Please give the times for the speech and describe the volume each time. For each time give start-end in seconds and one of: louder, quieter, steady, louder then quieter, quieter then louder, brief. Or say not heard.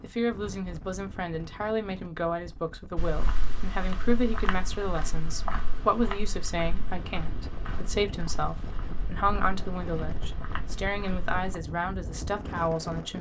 0.0-13.1 steady.